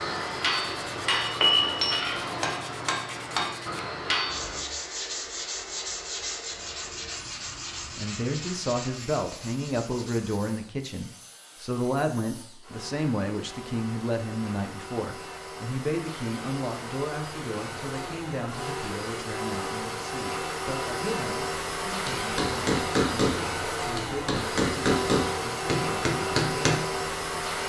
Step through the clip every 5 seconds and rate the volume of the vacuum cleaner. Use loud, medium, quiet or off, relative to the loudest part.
medium, quiet, quiet, medium, loud, loud.